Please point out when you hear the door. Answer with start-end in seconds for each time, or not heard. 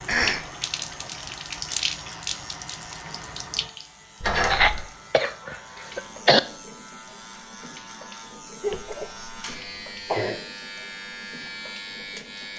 4.2-4.8.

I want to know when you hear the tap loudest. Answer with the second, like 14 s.
2 s.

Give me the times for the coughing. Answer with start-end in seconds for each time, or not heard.
0.1-0.5, 4.4-6.4, 8.6-10.4.